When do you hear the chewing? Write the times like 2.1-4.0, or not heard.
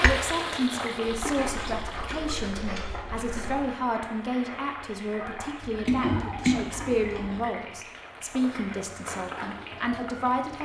1.1-3.8, 5.6-7.5.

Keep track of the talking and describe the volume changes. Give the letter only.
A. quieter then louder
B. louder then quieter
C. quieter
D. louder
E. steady
E.